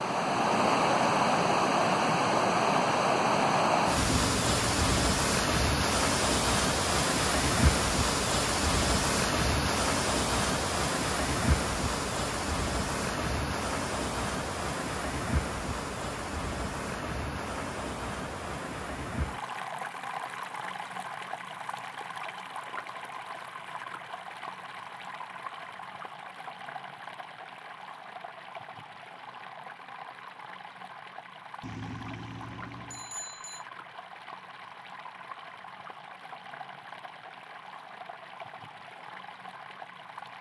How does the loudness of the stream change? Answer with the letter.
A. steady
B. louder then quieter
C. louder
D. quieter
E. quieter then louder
D.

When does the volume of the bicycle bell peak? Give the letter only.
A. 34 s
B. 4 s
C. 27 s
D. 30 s
B.